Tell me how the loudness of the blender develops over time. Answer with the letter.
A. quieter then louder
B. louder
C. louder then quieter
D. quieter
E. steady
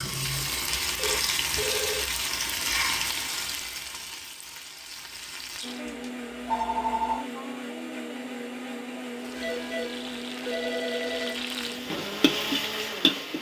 E.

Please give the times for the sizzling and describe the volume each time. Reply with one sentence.
You can hear the sizzling from 0.0 to 5.8 s, getting quieter; and from 9.2 to 13.3 s, getting louder.